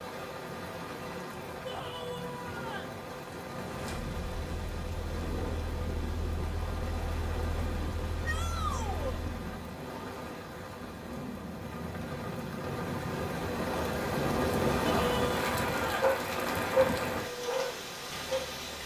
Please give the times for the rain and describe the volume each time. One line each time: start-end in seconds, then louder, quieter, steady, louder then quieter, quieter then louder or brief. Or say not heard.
0.0-18.8 louder.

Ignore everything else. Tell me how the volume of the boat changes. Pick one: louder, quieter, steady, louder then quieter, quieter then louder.
steady.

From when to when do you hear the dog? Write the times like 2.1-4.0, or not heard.
16.0-18.6.